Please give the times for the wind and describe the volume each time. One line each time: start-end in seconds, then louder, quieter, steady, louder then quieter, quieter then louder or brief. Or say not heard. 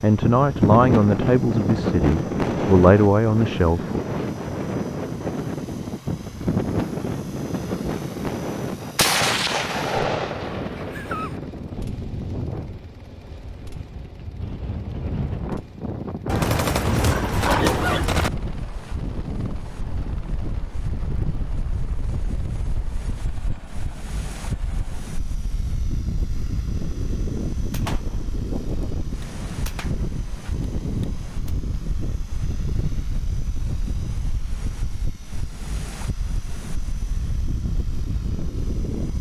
0.0-39.1 quieter.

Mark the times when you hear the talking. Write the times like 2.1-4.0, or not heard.
0.0-4.0.